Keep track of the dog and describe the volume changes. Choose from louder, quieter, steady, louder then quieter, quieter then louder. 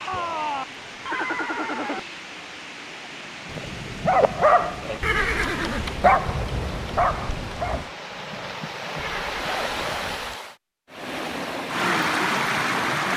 quieter.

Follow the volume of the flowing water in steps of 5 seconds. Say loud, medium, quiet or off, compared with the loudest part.
quiet, medium, loud.